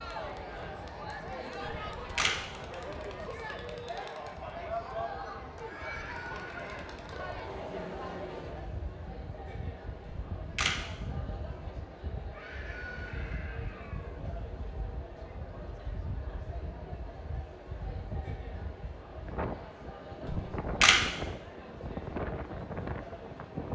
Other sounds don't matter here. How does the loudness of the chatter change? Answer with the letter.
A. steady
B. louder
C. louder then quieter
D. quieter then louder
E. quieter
E.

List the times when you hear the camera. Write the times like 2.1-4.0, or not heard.
1.6-2.4, 10.1-10.8, 20.2-21.0.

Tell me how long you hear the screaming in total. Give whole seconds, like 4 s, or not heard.
3 s.